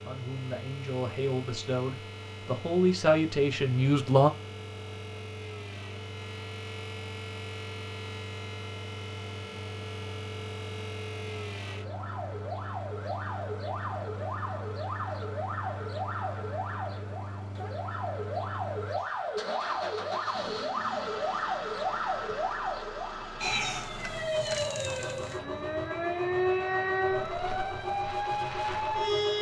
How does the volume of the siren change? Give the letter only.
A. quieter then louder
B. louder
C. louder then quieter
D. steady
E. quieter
B.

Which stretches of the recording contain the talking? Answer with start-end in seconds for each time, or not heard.
0.0-4.3.